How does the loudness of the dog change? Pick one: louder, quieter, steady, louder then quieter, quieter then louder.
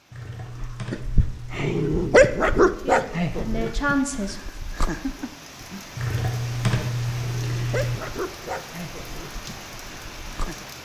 quieter.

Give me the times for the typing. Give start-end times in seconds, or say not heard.
0.1-2.1, 6.0-8.0.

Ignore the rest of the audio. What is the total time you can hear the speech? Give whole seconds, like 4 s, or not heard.
2 s.